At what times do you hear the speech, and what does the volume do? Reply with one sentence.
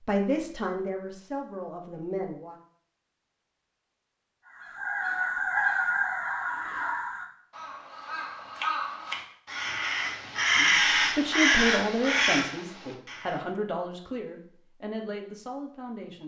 The speech can be heard briefly from 0.0 to 2.5 s; and from 10.6 to 16.2 s, getting quieter.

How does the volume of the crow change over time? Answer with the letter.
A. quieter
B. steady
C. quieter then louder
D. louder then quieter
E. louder
C.